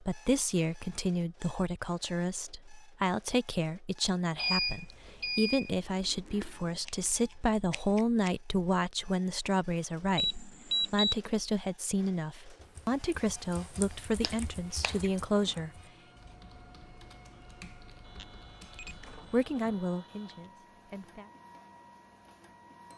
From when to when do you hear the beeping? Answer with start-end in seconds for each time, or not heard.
4.3-5.8, 10.2-11.2, 18.1-20.4.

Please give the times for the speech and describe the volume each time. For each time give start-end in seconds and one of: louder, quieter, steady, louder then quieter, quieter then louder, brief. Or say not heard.
0.0-15.7 steady
19.1-21.3 brief.